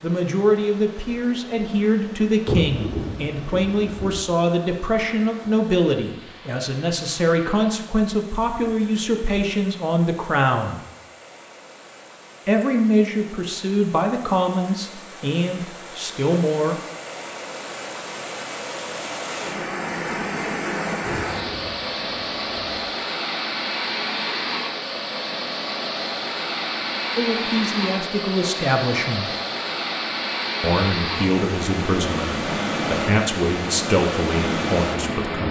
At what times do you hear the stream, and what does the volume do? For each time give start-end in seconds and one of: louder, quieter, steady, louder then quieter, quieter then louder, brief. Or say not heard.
0.0-35.4 louder.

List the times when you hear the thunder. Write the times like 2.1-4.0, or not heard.
2.5-4.2, 21.0-22.8.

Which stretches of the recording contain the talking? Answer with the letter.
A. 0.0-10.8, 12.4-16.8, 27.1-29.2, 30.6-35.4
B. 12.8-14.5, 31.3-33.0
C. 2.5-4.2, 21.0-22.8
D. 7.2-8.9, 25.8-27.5
A.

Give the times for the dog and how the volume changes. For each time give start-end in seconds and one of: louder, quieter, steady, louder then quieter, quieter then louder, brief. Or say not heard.
not heard.